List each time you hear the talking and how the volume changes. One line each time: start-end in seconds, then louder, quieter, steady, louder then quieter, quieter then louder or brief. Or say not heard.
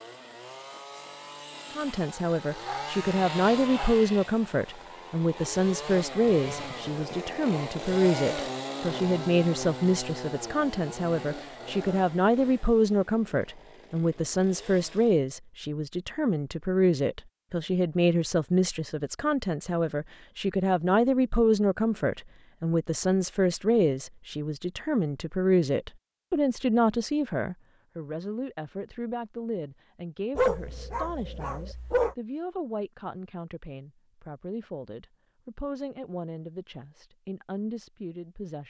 1.8-38.6 quieter.